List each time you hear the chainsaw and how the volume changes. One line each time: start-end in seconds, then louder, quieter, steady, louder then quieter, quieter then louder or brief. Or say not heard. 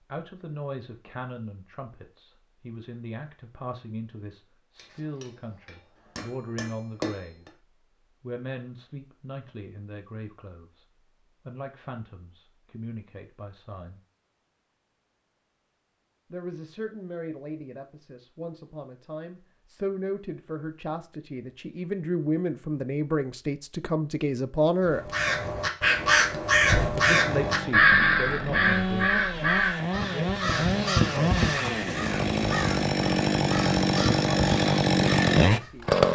27.1-36.0 louder.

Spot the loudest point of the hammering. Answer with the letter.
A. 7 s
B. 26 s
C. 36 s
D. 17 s
A.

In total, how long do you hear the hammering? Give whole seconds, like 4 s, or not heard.
3 s.